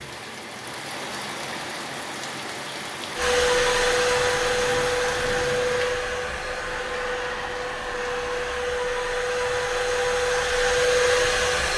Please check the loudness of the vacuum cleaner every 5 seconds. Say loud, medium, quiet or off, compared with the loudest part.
loud, medium, loud.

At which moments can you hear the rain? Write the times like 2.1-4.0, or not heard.
0.0-8.6.